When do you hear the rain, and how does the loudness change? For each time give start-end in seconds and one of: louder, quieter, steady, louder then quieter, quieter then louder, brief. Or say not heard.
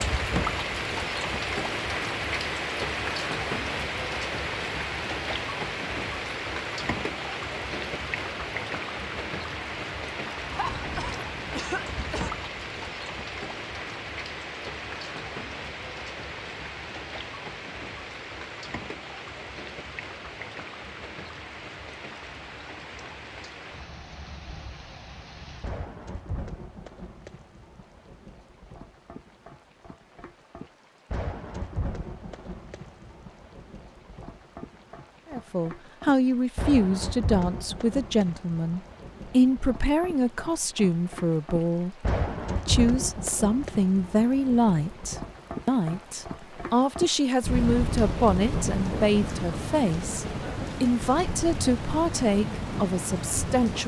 0.0-53.8 quieter then louder.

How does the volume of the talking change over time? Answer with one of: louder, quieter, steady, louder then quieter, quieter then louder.
steady.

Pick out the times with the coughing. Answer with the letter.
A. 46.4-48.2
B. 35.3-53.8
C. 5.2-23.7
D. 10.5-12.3
D.